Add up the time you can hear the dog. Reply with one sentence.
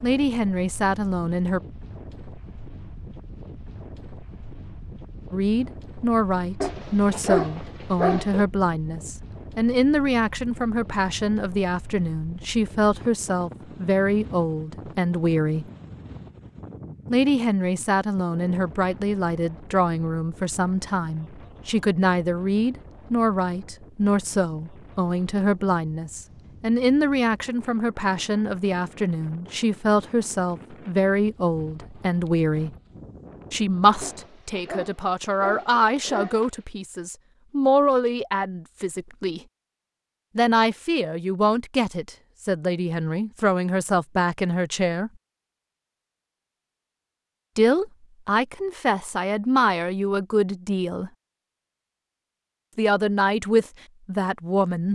The dog can be heard for 4 seconds in total.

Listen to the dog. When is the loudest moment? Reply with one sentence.
The volume of the dog peaks at 7 seconds.